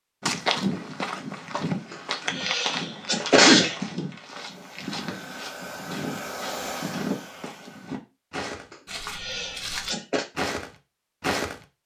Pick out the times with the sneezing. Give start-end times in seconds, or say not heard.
1.9-3.9, 8.7-10.2.